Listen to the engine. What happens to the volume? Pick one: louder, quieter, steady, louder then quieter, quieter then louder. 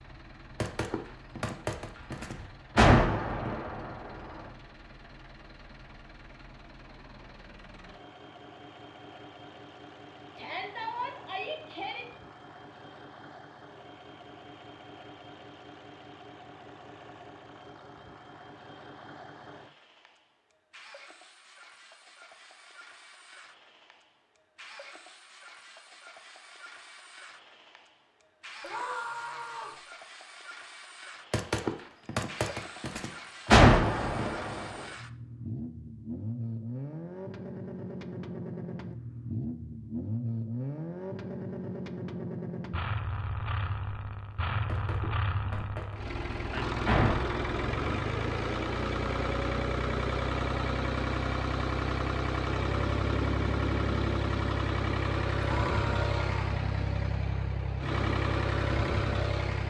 louder.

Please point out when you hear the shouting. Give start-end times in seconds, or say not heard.
10.3-12.1, 28.6-29.8, 55.5-56.4.